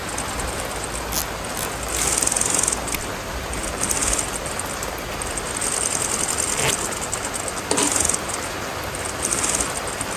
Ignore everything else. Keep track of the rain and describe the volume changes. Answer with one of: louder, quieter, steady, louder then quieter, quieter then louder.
steady.